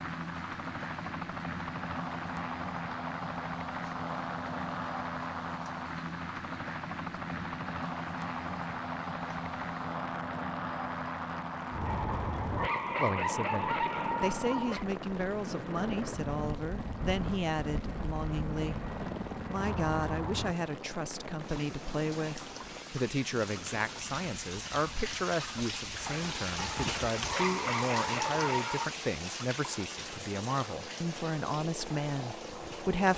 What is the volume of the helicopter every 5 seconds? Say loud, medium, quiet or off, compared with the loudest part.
loud, loud, loud, loud, medium, quiet, medium.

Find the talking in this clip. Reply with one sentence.
You can hear the talking from 12.9 to 33.1 s.